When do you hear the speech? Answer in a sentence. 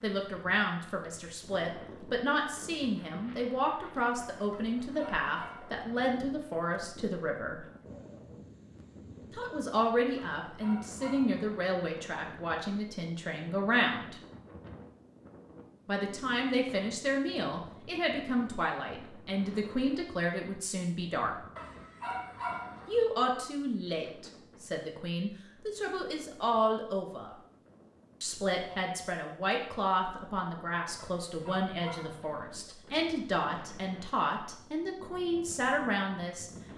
The speech can be heard from 0.0 to 7.6 s, from 9.3 to 14.2 s, from 15.8 to 21.4 s, from 22.9 to 27.4 s and from 28.2 to 36.5 s.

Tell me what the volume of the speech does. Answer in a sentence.
The loudness of the speech stays about the same.